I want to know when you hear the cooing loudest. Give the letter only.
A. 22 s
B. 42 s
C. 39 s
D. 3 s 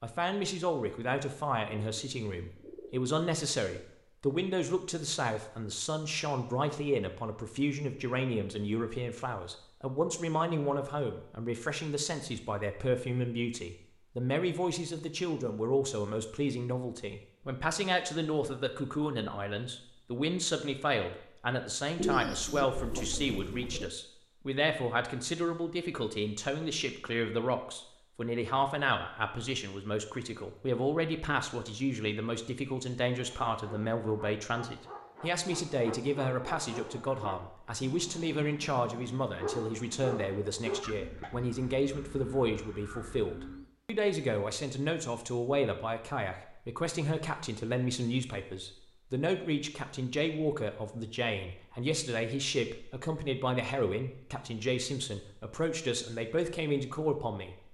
A.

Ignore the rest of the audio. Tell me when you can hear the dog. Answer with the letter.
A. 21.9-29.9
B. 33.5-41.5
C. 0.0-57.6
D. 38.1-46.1
B.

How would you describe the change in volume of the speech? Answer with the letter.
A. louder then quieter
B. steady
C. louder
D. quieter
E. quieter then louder
B.